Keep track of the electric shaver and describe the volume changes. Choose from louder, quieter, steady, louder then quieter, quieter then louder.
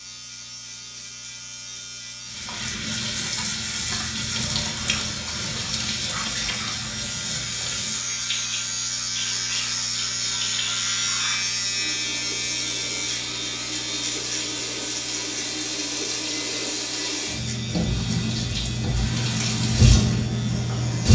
louder then quieter.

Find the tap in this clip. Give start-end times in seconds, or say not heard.
2.2-21.1.